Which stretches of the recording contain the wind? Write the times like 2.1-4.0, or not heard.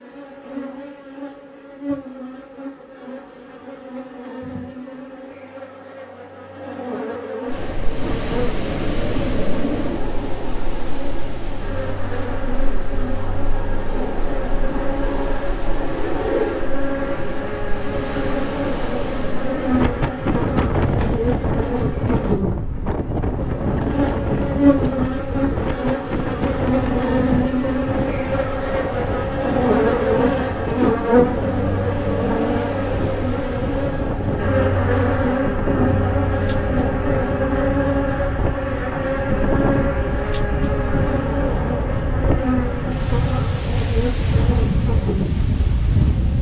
7.5-46.3.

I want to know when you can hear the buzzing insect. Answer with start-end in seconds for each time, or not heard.
0.0-46.3.